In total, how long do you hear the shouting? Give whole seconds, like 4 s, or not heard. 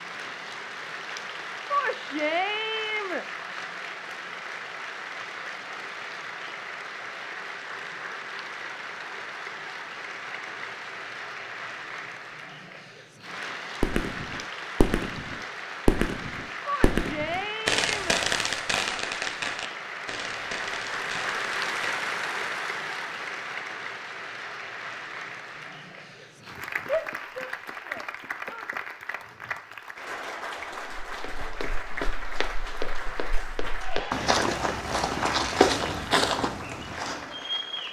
5 s.